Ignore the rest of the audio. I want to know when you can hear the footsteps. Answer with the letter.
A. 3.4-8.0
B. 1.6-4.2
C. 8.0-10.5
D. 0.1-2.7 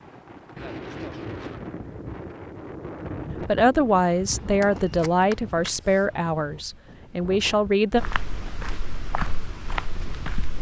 C.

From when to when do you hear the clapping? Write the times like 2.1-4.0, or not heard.
not heard.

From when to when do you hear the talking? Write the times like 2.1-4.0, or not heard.
3.4-8.0.